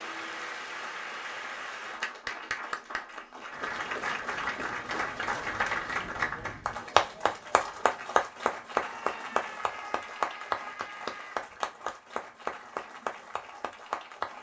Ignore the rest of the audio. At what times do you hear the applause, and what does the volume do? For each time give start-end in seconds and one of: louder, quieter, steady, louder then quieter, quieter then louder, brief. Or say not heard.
0.0-14.3 louder then quieter.